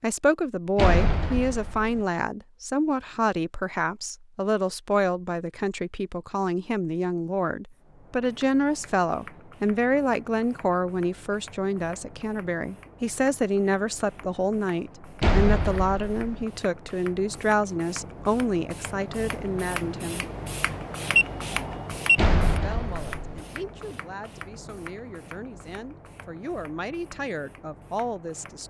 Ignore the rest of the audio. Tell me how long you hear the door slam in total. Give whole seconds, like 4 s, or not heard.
4 s.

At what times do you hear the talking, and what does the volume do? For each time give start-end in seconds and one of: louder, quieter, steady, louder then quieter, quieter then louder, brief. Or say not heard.
0.0-20.2 steady
22.6-28.6 louder.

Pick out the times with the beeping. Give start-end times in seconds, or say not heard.
21.1-22.2.